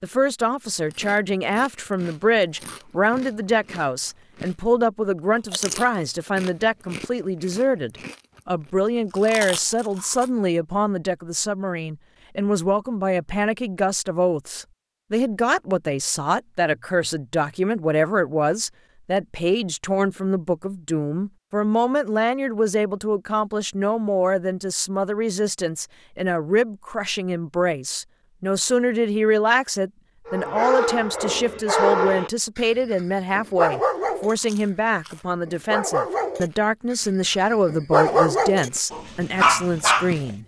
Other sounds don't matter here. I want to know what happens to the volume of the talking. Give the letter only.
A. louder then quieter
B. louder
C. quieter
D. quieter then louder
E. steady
E.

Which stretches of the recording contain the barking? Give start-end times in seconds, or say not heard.
30.2-32.6, 33.4-34.4, 35.5-37.0, 37.6-40.3.